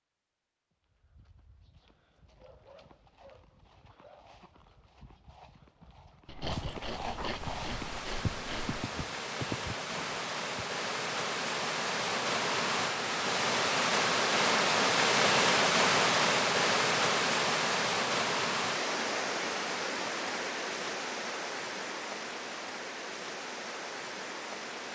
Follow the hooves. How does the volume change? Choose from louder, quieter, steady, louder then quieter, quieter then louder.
louder.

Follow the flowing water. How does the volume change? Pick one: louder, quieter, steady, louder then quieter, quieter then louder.
louder then quieter.